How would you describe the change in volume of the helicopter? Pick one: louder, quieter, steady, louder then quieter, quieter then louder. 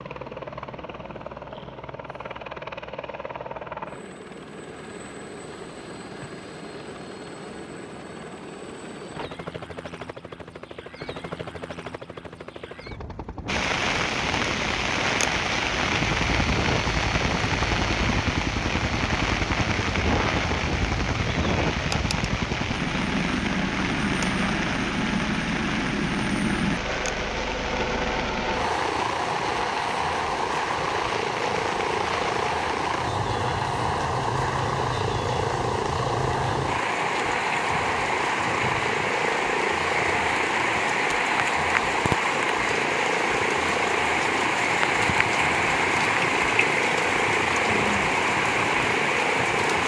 louder.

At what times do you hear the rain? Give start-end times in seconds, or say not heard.
13.4-49.8.